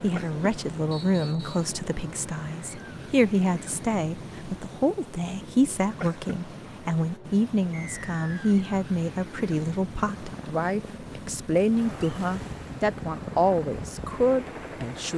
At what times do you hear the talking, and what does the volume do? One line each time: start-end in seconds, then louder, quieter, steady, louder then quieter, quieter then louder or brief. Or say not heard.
0.0-15.1 steady.